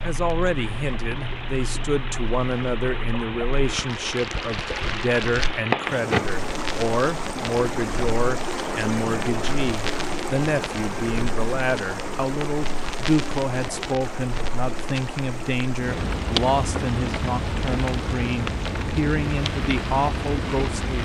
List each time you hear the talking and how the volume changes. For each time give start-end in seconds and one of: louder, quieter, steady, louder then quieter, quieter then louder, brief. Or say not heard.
0.0-20.9 steady.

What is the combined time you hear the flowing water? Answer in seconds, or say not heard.
21 s.